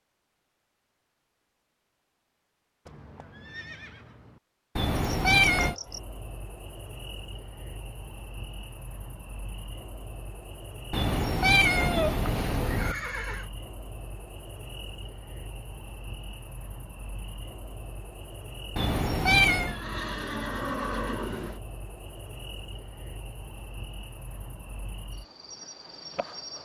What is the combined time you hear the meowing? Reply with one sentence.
You can hear the meowing for 4 seconds altogether.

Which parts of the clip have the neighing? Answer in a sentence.
You can hear the neighing from 2.9 to 4.4 s, from 12.7 to 13.5 s and from 19.6 to 21.6 s.